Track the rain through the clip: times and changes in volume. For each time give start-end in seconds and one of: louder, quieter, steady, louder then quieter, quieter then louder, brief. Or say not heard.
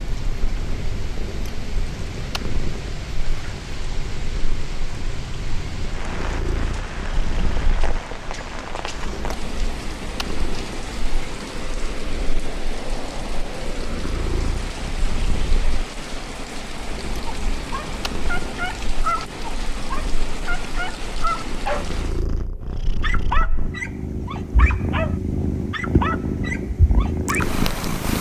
0.0-22.2 steady.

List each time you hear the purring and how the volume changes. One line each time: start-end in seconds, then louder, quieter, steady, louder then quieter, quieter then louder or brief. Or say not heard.
0.0-28.1 louder.